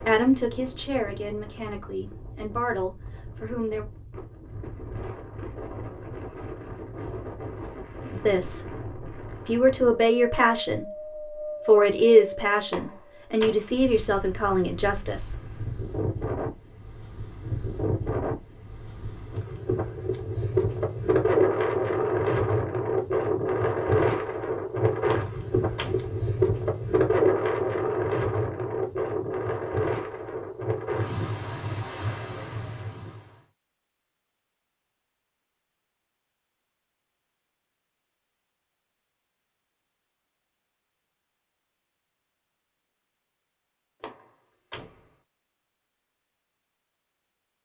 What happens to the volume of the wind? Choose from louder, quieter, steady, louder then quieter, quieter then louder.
louder.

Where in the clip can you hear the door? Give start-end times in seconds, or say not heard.
12.7-13.8, 25.1-26.1, 44.0-45.1.